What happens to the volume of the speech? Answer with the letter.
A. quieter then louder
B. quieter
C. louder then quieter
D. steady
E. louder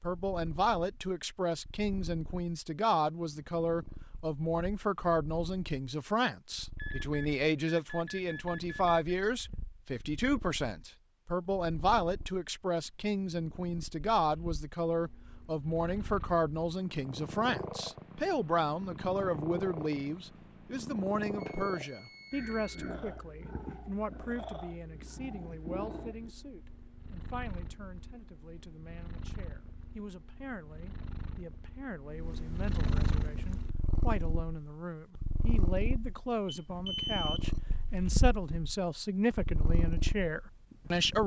A.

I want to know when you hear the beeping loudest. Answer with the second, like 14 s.
37 s.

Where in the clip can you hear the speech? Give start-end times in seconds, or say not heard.
0.0-41.2.